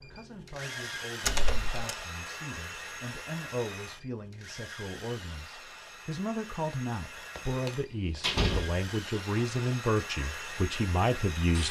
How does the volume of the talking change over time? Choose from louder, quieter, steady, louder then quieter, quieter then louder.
louder.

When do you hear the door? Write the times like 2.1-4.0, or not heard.
1.2-1.9, 7.3-8.8.